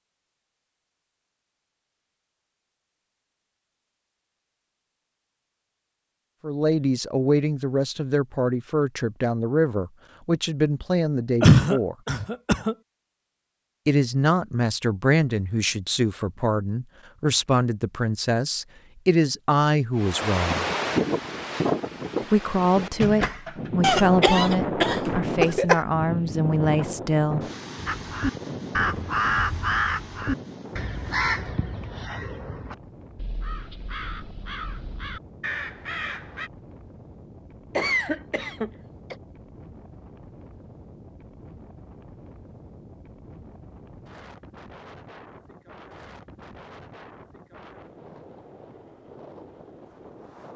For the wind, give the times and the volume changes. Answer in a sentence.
The wind can be heard from 19.9 to 50.5 s, getting quieter.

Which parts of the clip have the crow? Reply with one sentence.
You can hear the crow from 27.9 to 36.5 s.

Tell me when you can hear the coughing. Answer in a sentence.
You can hear the coughing from 11.4 to 12.8 s, from 23.8 to 25.8 s and from 37.8 to 39.1 s.